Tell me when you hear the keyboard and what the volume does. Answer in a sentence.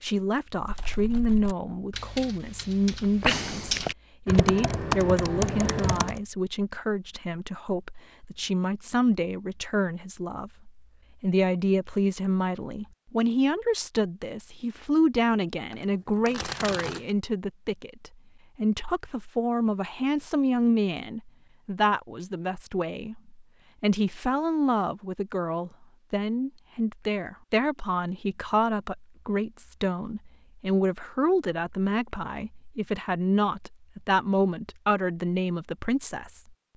The keyboard can be heard from 0.6 to 6.2 s, getting louder.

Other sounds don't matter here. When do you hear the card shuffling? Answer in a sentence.
You can hear the card shuffling from 15.7 to 17.1 s.